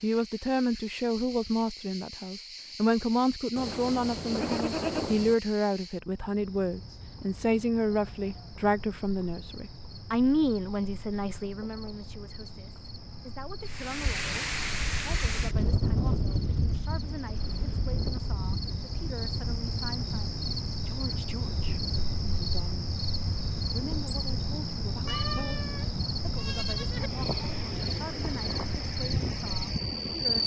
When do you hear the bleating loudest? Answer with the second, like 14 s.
5 s.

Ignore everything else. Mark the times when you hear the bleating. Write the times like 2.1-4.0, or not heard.
3.5-5.3, 25.1-27.1.